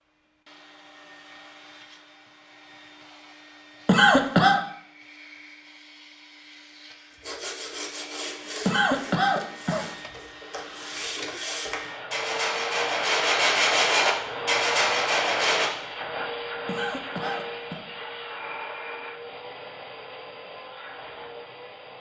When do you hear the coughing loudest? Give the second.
4 s.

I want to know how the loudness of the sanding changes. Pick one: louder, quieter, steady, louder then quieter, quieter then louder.
quieter then louder.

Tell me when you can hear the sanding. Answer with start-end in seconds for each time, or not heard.
7.2-15.7.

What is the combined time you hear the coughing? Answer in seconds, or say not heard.
3 s.